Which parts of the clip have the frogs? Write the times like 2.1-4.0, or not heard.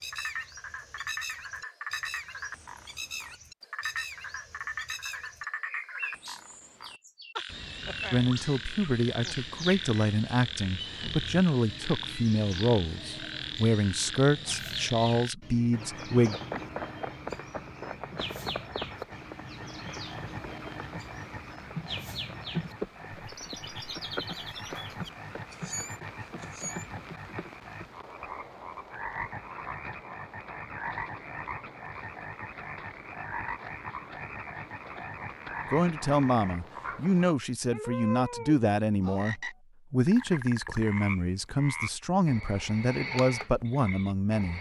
0.0-44.5.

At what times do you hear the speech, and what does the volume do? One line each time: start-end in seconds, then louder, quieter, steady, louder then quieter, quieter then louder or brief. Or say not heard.
8.1-16.4 steady
35.6-44.5 steady.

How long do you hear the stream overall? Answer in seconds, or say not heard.
not heard.